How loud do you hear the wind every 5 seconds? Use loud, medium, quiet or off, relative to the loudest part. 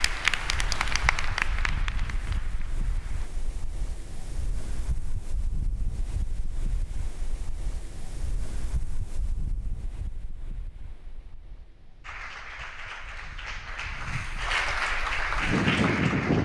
quiet, quiet, quiet, loud.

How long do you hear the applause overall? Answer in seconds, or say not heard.
8 s.